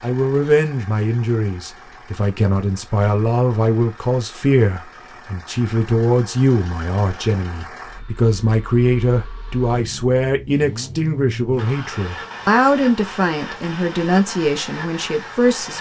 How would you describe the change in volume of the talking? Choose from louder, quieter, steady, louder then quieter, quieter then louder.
steady.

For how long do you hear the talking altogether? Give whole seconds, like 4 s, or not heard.
16 s.